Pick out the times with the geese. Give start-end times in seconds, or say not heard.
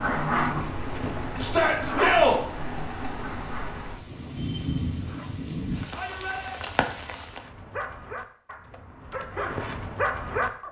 not heard.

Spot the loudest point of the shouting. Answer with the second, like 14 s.
2 s.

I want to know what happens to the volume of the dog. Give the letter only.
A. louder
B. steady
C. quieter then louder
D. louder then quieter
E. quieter
C.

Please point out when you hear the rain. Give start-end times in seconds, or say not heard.
0.0-7.5.